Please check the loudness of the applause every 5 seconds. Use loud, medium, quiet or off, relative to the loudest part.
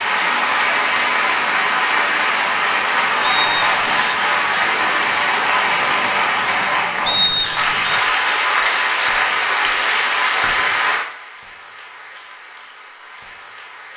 loud, loud, medium.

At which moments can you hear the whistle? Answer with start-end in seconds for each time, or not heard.
3.2-4.0, 7.0-8.0.